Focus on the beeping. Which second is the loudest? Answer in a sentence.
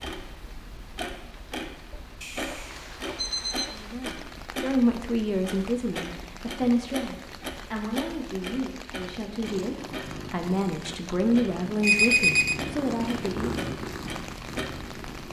The loudest moment of the beeping is at 12 seconds.